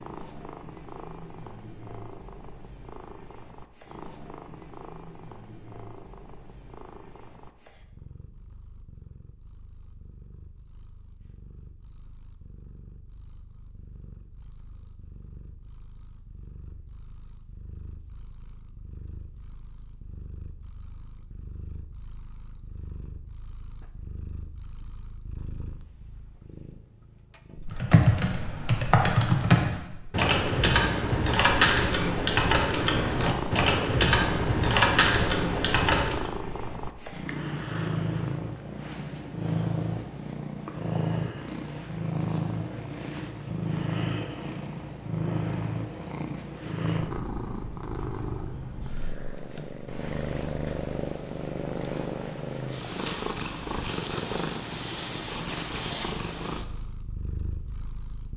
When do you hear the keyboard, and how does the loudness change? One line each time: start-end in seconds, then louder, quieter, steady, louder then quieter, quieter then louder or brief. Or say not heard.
27.7-36.3 steady.